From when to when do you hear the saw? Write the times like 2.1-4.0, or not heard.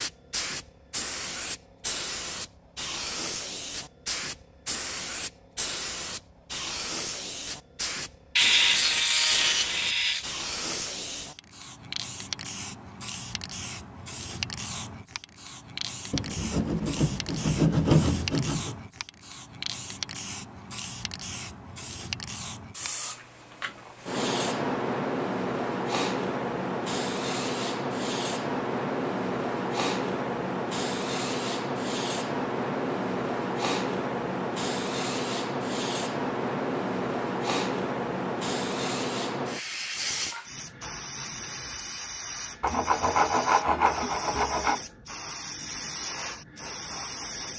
8.3-10.2, 16.1-18.8, 42.6-44.8.